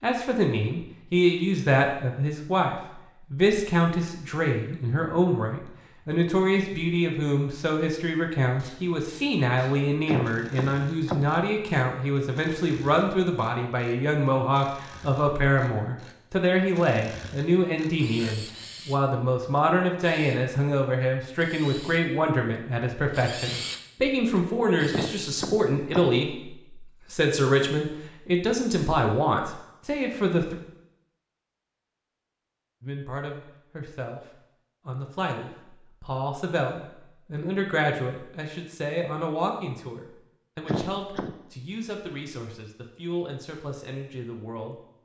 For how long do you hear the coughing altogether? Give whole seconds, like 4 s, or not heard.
3 s.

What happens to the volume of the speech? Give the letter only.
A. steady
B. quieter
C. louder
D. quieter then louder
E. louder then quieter
B.